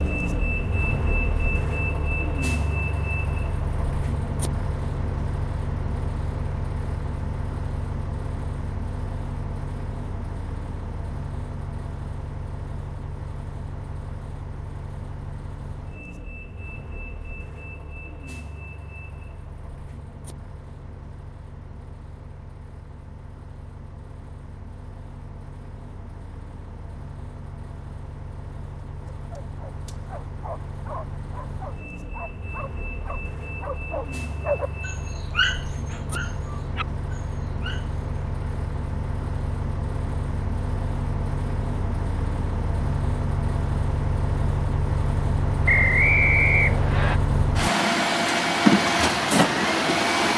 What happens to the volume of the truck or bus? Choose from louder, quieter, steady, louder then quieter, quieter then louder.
quieter then louder.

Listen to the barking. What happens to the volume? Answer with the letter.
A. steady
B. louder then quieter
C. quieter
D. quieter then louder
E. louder
B.